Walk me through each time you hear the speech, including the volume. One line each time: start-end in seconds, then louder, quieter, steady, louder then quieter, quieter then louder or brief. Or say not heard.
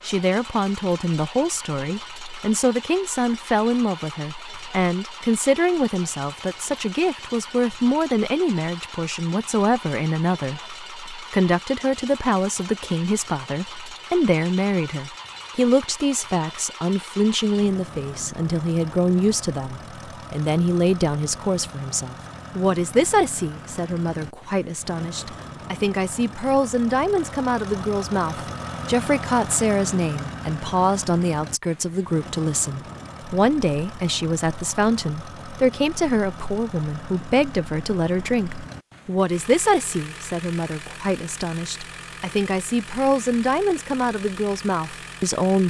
0.0-45.6 steady.